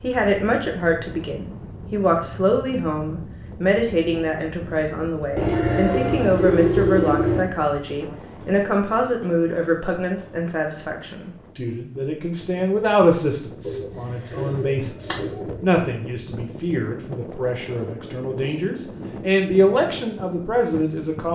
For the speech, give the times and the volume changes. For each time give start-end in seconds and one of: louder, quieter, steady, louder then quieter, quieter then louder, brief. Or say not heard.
0.0-21.3 steady.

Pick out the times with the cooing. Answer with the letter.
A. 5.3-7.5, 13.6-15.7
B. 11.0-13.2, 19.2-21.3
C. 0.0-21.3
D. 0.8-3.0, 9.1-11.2
A.